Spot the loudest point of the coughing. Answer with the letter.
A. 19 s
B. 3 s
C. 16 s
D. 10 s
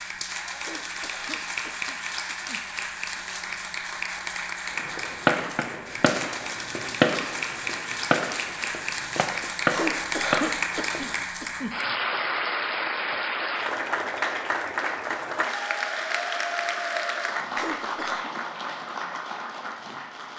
D.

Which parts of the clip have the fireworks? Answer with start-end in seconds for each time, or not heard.
4.8-11.2.